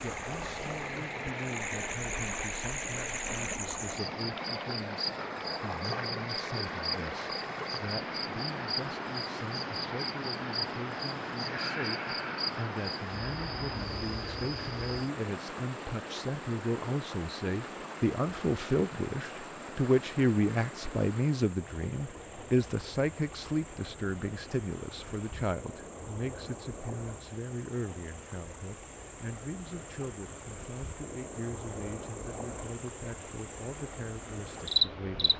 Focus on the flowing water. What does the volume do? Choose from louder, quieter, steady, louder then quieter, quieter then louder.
quieter.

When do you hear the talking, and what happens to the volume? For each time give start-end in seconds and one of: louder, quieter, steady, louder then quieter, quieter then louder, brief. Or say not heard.
0.0-35.3 louder then quieter.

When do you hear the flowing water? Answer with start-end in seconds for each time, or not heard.
0.0-35.3.